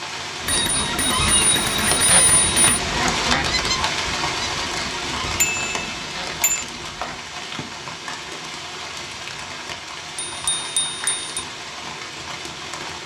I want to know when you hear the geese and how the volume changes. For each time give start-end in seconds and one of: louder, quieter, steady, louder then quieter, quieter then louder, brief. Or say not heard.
0.4-7.2 quieter.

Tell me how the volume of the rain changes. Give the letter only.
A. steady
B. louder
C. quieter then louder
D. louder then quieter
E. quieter
E.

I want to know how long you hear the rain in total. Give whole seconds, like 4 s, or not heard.
13 s.